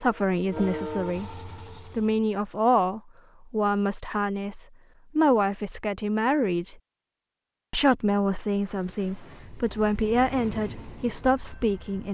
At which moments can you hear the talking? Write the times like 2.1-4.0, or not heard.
0.0-6.8, 7.7-12.0.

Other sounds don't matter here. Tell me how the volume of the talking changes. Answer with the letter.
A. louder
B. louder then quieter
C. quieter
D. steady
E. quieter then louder
D.